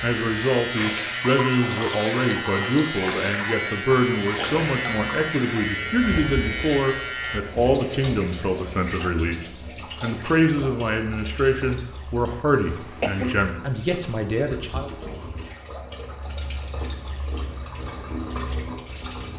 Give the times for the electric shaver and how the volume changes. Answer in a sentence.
You can hear the electric shaver from 0.0 to 7.5 s, at a steady volume.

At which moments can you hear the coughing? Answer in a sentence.
The coughing can be heard from 12.7 to 13.4 s.